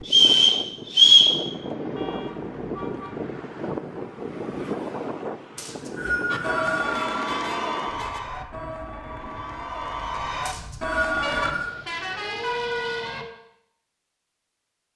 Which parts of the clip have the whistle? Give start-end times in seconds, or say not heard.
0.1-1.4, 5.5-7.2, 10.4-11.8.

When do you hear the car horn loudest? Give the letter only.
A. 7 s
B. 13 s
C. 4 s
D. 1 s
B.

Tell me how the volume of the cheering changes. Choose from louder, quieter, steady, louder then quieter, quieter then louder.
quieter then louder.